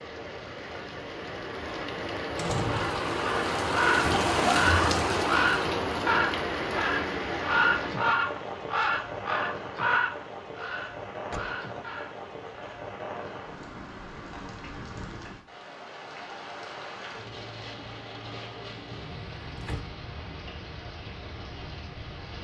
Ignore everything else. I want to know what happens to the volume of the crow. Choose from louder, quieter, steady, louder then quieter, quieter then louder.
quieter.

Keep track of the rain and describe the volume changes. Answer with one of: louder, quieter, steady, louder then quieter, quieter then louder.
quieter.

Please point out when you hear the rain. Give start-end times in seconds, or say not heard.
0.0-22.3.